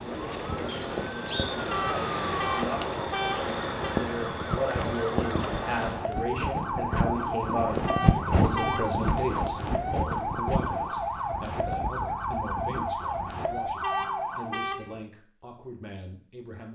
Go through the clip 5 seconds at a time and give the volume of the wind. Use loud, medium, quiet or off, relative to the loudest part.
medium, loud, medium, off.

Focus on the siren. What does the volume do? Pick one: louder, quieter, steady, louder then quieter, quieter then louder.
steady.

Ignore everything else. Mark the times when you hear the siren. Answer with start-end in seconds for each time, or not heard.
0.0-14.6.